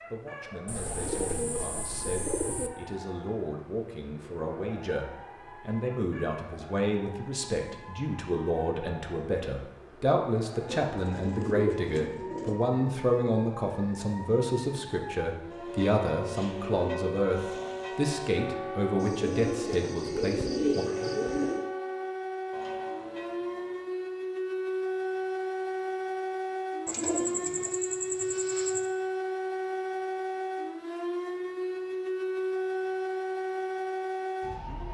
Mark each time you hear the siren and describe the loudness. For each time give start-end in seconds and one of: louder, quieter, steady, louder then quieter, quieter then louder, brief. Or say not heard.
0.0-34.8 louder.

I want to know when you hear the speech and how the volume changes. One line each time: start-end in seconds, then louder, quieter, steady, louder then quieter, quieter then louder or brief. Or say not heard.
0.1-20.9 louder.